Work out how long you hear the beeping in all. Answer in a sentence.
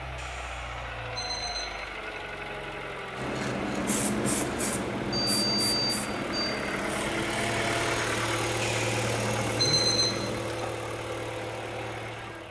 You can hear the beeping for 5 seconds altogether.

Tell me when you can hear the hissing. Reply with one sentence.
You can hear the hissing from 3.1 to 10.4 s.